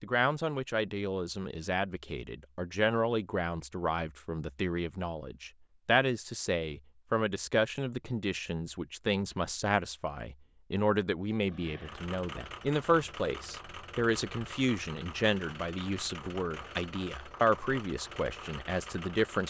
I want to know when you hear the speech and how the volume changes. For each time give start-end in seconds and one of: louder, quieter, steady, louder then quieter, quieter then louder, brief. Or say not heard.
0.0-19.4 steady.